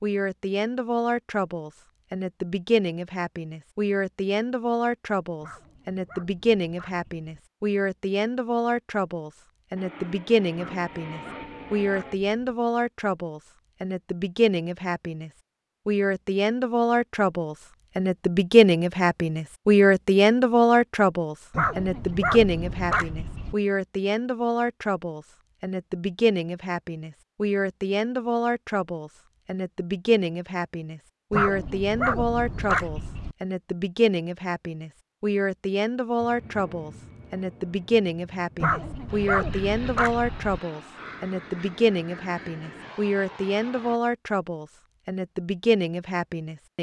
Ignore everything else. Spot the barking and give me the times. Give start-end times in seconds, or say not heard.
5.4-7.3, 10.6-12.6, 21.5-23.6, 31.3-33.4, 38.6-40.6.